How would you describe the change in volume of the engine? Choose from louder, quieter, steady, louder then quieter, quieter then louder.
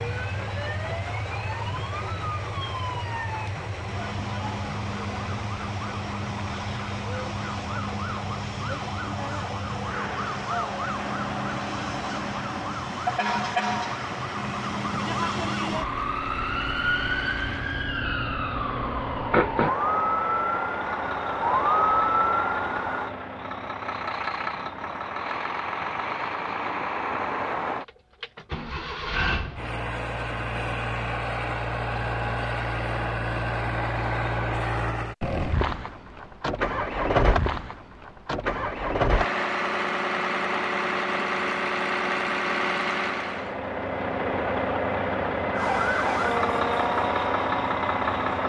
louder.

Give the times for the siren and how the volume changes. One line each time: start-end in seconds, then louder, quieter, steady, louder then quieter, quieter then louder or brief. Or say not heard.
0.0-23.1 louder
45.5-48.4 brief.